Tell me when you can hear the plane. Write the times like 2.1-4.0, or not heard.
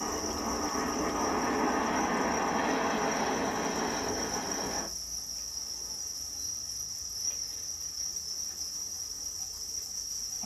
0.0-4.9.